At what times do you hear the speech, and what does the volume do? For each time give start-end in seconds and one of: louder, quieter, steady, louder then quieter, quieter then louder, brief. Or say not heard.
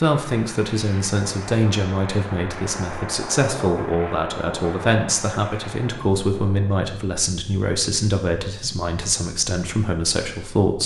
0.0-10.8 steady.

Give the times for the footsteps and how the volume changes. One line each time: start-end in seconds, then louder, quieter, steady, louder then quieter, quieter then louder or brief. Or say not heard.
not heard.